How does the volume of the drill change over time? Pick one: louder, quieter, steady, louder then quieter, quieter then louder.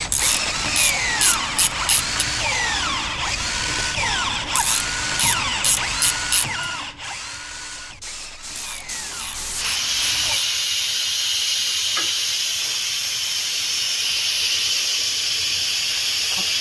quieter.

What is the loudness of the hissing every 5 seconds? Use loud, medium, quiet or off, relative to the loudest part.
quiet, medium, loud, loud.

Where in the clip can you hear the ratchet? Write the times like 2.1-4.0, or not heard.
0.1-2.2, 4.5-6.7, 8.6-10.7, 12.6-14.4.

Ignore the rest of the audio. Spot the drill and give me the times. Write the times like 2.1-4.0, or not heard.
0.0-10.4.